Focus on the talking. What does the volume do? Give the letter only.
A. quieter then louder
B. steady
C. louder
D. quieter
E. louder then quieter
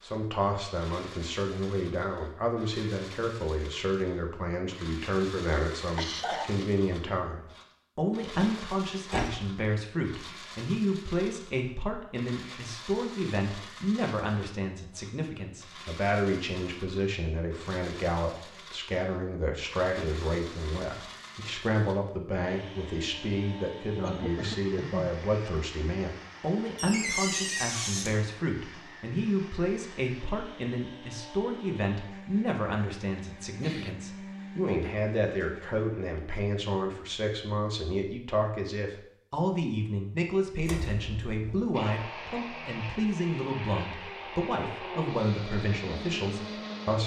B.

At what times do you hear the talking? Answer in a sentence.
The talking can be heard from 0.0 to 47.0 s.